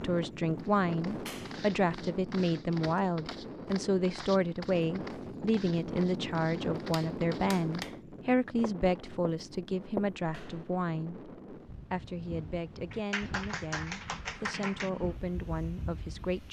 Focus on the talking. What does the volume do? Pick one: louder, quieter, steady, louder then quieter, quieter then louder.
quieter.